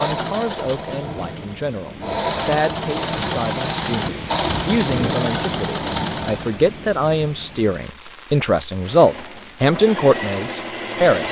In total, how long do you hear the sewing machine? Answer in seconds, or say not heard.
9 s.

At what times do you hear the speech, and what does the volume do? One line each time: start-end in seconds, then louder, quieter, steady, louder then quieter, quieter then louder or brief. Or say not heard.
0.0-11.2 louder.